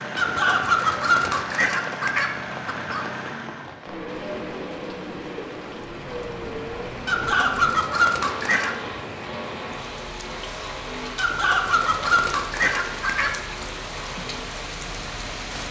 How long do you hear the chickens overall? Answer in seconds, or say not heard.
7 s.